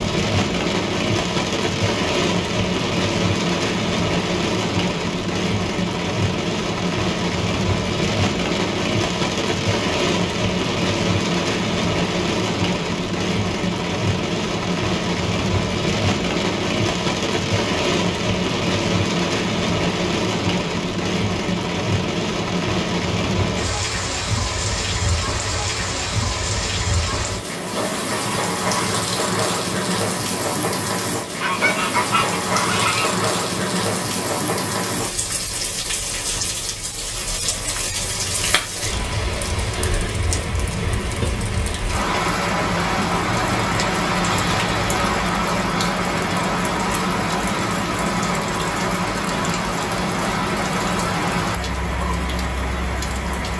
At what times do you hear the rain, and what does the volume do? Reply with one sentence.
The rain can be heard from 0.0 to 53.5 s, at a steady volume.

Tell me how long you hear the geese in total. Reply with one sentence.
The geese can be heard for 2 seconds in total.